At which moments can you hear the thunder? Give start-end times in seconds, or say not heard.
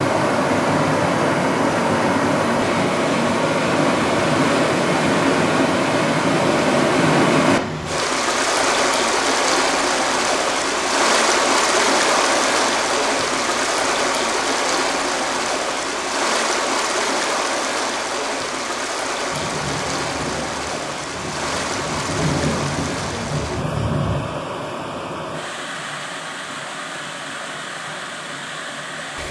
19.3-24.2.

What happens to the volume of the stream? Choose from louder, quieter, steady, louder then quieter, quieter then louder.
quieter.